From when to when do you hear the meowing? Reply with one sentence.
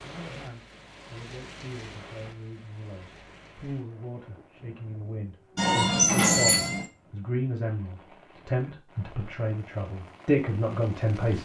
The meowing can be heard from 5.5 to 6.8 s.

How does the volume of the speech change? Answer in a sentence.
The loudness of the speech goes up.